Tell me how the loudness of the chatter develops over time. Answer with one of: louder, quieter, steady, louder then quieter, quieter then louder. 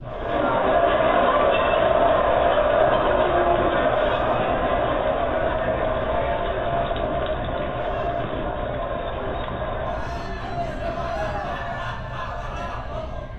quieter.